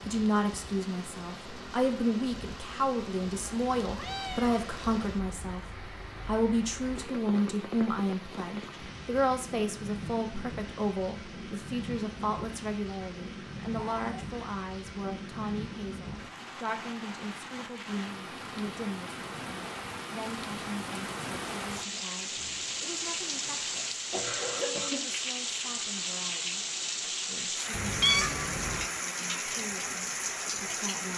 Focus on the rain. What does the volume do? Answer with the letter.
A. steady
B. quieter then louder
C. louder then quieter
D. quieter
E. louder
E.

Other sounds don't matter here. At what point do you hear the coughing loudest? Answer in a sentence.
The volume of the coughing peaks at 25 seconds.